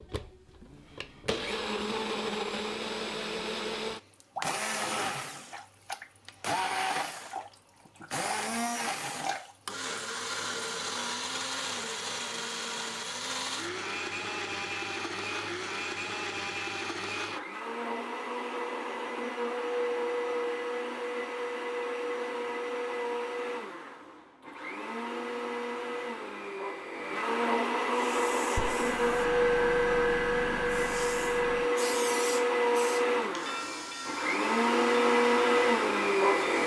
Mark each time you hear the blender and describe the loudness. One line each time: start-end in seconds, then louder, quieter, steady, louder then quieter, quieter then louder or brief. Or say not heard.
0.0-36.6 louder.